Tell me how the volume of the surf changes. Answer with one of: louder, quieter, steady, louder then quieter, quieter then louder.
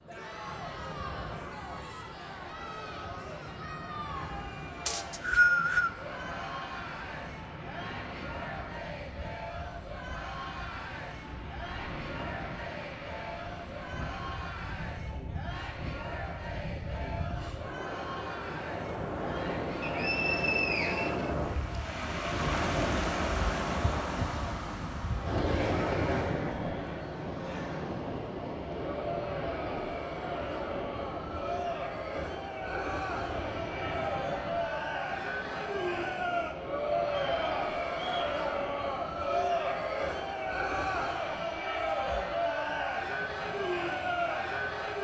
louder then quieter.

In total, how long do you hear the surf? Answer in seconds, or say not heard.
45 s.